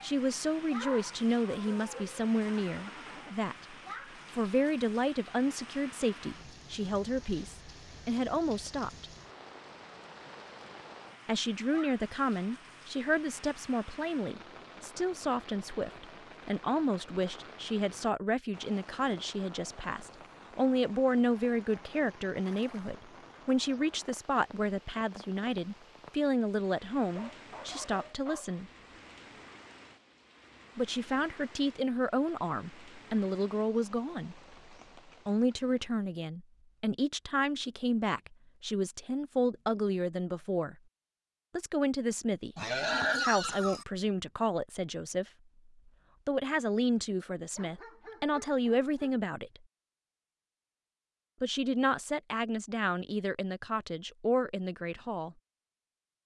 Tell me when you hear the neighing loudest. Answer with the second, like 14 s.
43 s.